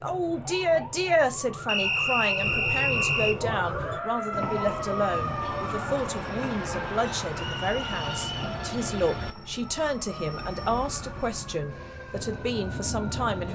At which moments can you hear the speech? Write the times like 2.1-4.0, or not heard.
0.0-13.5.